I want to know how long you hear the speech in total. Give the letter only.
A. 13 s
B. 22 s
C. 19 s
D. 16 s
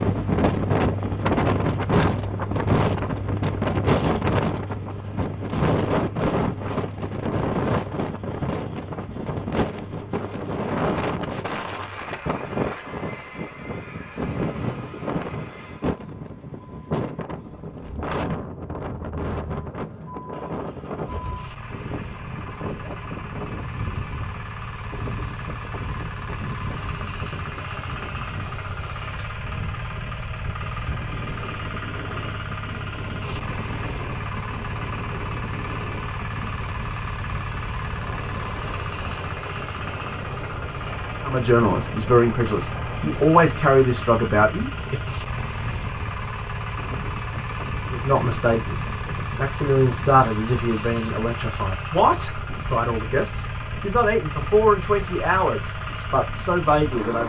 A.